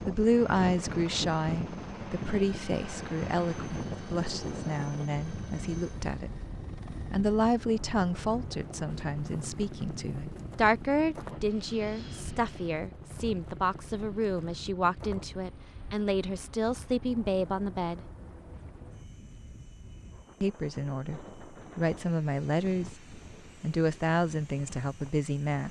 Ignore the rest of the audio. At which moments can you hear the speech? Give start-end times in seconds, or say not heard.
0.1-6.3, 7.0-18.0, 20.4-25.6.